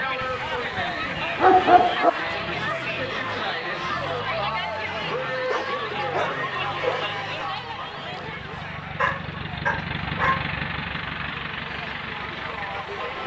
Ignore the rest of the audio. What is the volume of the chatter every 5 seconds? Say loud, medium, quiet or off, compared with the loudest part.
loud, loud, medium.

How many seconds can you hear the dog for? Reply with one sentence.
The dog can be heard for 5 seconds in total.